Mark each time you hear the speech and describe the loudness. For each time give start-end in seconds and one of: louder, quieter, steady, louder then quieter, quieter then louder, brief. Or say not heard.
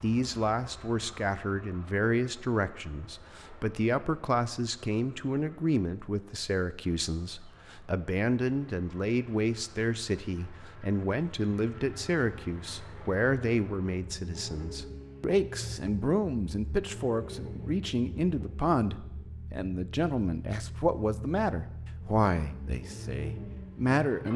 0.0-24.3 steady.